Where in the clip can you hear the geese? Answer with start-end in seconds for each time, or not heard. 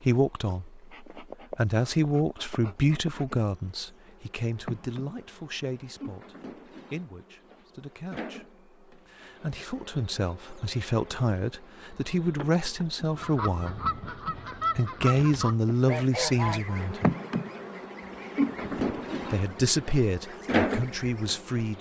13.2-21.4.